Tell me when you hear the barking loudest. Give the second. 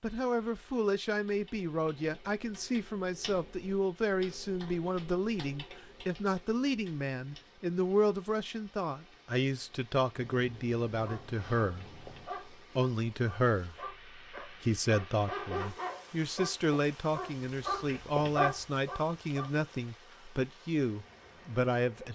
18 s.